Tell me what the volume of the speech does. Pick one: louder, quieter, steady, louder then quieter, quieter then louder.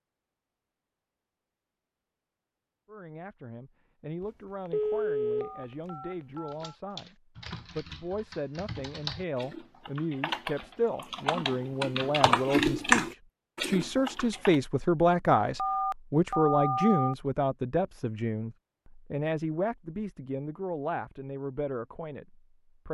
louder then quieter.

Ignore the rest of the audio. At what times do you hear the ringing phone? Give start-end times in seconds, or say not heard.
4.2-6.8, 15.6-17.1.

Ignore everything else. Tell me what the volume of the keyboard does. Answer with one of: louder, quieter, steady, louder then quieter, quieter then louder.
louder.